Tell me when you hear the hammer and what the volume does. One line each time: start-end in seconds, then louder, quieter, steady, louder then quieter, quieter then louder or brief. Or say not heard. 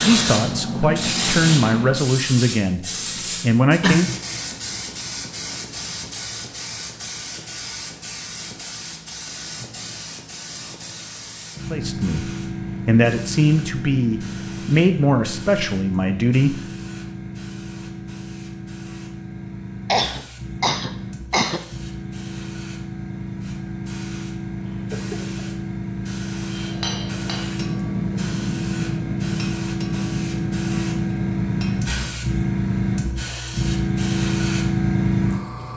26.5-32.2 steady.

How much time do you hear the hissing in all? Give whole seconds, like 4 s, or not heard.
36 s.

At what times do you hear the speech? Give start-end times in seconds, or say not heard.
0.0-4.2, 11.7-16.6.